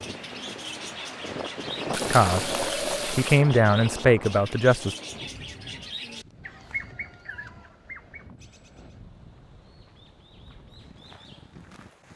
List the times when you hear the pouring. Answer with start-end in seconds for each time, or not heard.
1.9-3.5.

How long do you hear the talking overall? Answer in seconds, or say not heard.
3 s.